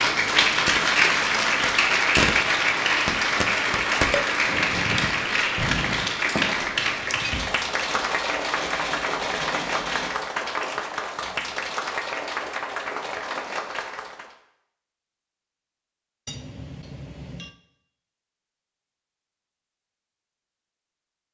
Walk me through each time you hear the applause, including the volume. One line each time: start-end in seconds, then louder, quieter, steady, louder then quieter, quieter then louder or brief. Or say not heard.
0.0-14.3 quieter.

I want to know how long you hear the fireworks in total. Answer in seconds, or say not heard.
6 s.